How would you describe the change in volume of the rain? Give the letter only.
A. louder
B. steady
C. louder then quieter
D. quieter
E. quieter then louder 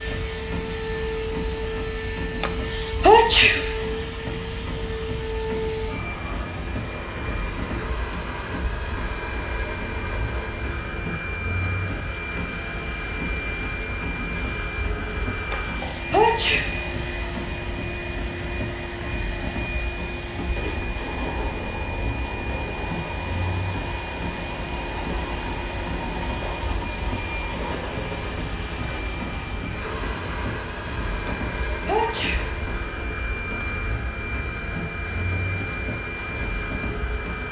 B.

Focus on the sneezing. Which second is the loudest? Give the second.
3 s.